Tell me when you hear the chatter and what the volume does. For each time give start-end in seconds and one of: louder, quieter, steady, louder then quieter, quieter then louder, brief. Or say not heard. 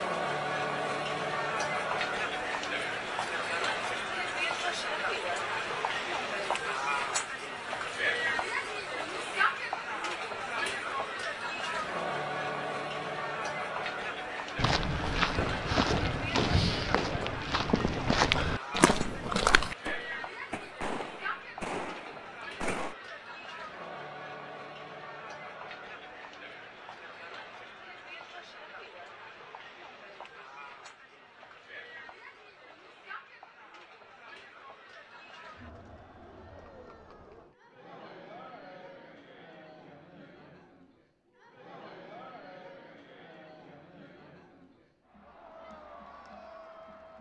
0.0-47.1 quieter.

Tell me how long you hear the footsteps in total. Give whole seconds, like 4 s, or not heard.
5 s.